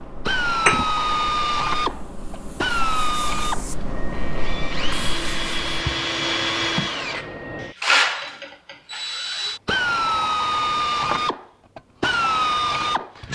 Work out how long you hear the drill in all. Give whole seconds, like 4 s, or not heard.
13 s.